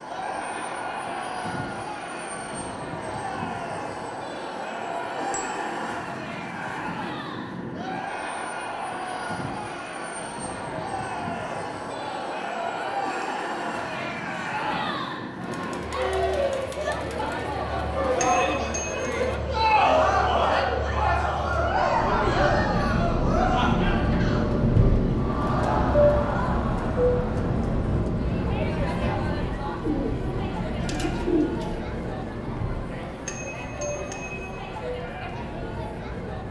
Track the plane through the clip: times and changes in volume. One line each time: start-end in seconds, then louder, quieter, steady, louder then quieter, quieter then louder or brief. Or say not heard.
0.0-36.4 louder then quieter.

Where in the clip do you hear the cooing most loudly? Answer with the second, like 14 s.
31 s.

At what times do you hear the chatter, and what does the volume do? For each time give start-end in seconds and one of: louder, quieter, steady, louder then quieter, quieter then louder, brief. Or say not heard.
0.0-36.4 louder then quieter.